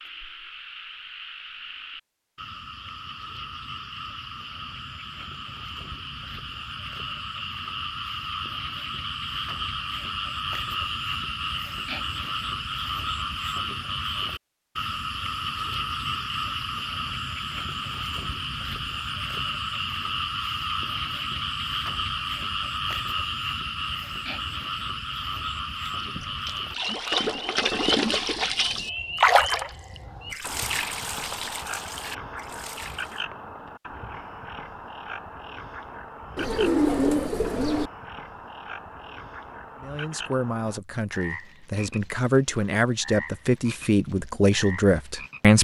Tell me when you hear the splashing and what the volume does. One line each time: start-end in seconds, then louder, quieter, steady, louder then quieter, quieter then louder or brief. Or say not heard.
25.9-33.2 louder then quieter.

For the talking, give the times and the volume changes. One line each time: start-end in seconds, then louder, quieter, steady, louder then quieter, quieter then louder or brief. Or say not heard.
39.8-45.5 louder.